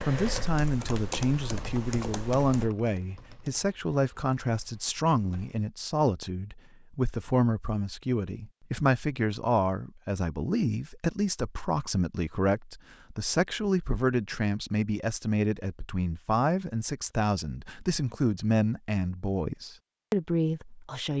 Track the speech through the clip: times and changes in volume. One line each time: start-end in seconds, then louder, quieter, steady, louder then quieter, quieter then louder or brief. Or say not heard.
0.1-21.1 steady.